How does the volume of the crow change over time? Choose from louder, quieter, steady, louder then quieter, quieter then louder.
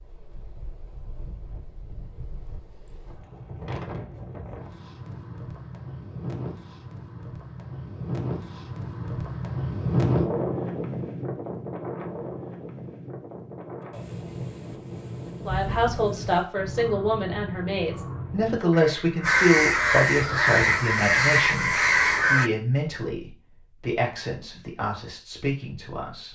louder.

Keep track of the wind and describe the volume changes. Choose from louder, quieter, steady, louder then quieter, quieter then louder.
louder then quieter.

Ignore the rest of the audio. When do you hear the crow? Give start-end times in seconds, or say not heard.
15.4-22.5.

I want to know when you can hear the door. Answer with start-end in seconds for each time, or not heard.
not heard.